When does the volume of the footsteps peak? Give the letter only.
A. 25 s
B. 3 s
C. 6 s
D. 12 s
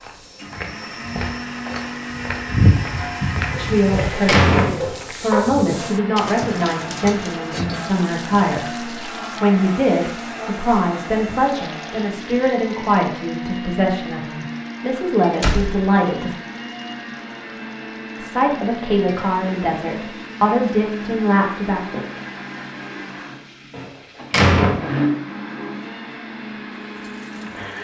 B.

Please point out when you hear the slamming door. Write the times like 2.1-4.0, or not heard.
3.6-5.3, 15.4-15.8, 23.7-24.9.